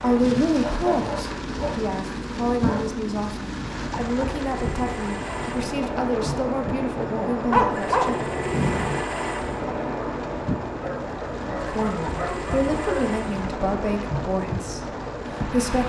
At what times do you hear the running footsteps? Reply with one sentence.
The running footsteps can't be heard in this clip.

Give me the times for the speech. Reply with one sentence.
You can hear the speech from 0.0 to 8.2 s and from 11.6 to 15.8 s.